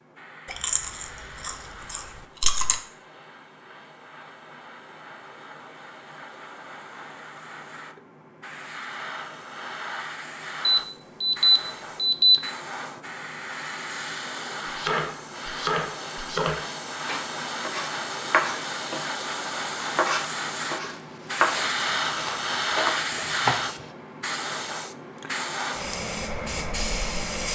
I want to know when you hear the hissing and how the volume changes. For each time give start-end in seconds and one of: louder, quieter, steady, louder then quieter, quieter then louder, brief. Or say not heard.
0.0-27.4 louder.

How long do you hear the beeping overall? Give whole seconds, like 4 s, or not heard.
2 s.